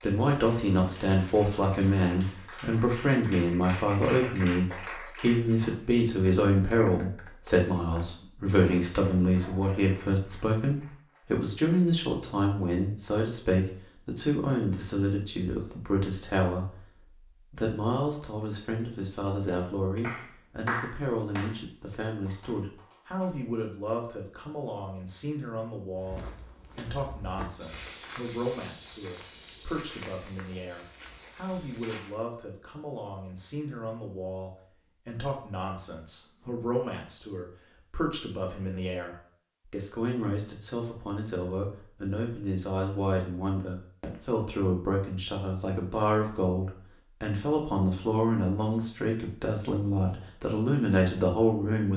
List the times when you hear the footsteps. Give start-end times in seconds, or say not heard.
25.9-32.1.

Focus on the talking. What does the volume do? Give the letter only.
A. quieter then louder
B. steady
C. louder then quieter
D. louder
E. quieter
A.